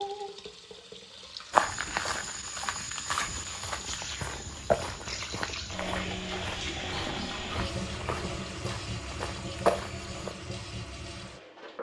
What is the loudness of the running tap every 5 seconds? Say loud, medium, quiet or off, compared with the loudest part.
medium, loud, medium.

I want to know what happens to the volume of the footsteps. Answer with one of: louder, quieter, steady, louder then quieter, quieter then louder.
quieter then louder.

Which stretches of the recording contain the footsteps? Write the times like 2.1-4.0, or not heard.
1.5-10.3.